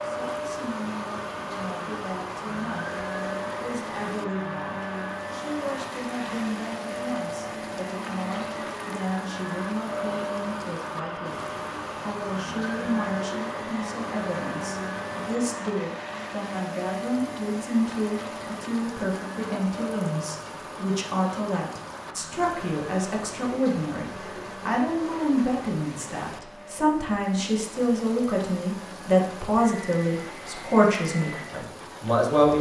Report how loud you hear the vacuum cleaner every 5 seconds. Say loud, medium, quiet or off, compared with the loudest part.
loud, loud, loud, loud, medium, medium, medium.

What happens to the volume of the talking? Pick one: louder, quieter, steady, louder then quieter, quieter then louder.
louder.